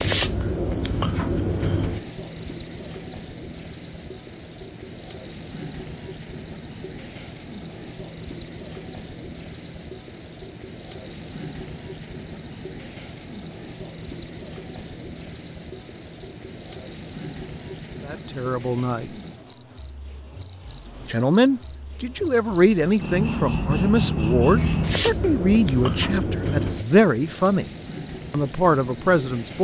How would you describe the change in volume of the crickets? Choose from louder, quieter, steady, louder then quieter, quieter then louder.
steady.